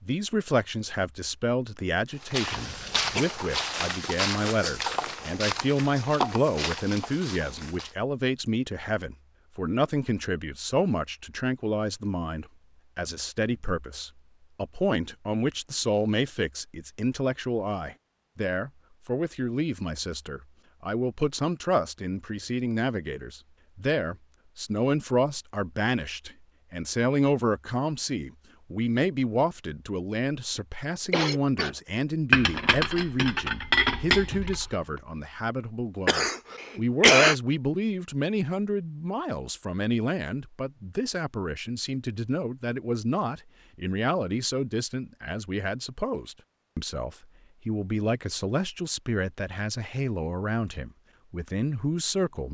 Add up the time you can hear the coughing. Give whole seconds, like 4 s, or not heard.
3 s.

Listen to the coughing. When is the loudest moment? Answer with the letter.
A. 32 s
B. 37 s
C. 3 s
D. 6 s
B.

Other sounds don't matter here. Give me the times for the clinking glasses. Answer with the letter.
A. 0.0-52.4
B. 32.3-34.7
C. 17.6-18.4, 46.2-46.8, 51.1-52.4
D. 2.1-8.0
B.